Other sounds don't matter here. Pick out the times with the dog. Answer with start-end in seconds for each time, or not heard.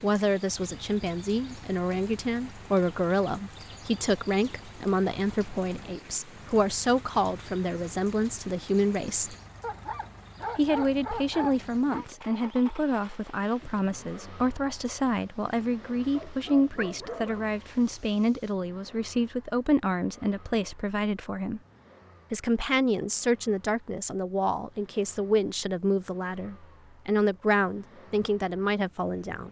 9.6-12.1, 16.1-17.5.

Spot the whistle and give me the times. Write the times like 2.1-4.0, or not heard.
not heard.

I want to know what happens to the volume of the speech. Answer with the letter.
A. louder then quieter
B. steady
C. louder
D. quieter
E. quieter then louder
B.